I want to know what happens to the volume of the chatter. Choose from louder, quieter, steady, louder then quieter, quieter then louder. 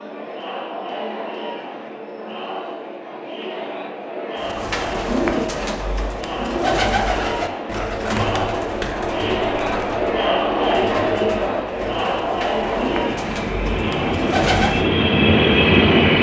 louder.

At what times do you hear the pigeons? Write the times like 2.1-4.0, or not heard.
4.3-14.8.